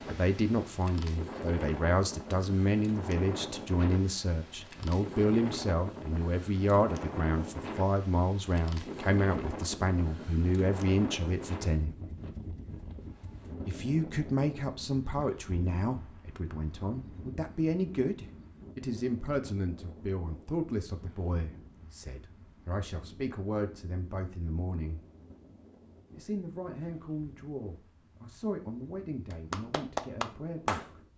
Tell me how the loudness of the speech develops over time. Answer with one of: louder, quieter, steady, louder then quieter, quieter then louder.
quieter.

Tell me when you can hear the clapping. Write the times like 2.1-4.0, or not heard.
29.3-30.9.